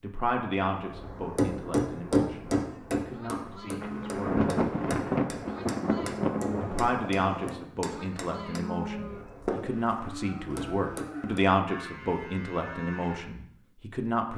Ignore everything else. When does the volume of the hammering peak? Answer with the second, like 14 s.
2 s.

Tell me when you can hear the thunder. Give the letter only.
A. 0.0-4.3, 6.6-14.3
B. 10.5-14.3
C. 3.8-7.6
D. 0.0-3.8
C.